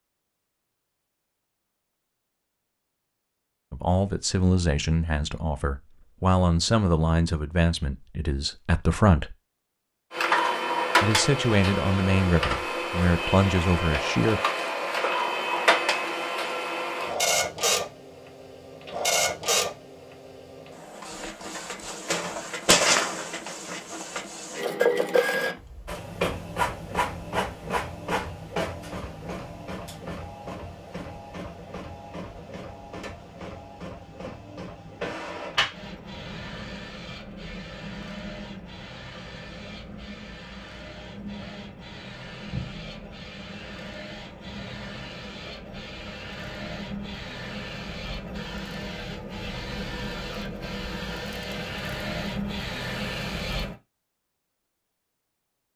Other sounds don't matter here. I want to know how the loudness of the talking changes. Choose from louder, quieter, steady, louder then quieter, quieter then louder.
steady.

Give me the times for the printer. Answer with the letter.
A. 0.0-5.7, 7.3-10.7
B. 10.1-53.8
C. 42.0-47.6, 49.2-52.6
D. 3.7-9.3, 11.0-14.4
B.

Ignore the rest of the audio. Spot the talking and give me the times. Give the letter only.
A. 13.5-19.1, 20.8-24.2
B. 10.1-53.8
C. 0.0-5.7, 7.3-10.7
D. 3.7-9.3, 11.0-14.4
D.